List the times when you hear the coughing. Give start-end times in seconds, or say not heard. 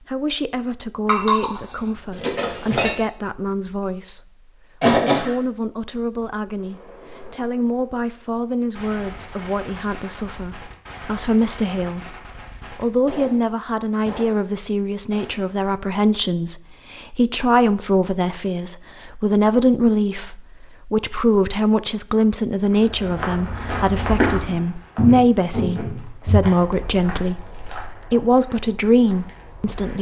4.8-5.3.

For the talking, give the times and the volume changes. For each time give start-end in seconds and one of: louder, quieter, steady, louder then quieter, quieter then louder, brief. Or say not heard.
0.1-29.9 louder.